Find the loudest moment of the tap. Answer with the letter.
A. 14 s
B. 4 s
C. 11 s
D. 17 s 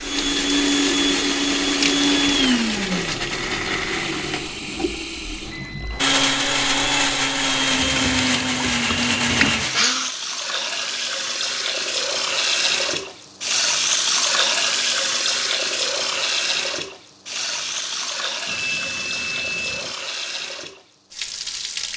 A.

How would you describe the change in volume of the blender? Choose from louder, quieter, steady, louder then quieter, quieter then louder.
quieter then louder.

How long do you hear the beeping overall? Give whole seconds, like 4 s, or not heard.
2 s.